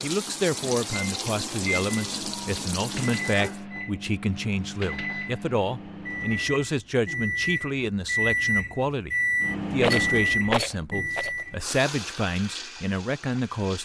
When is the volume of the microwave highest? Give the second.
10 s.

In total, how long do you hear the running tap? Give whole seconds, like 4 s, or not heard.
6 s.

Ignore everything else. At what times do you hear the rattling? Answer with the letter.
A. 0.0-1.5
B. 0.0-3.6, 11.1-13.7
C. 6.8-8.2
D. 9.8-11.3
D.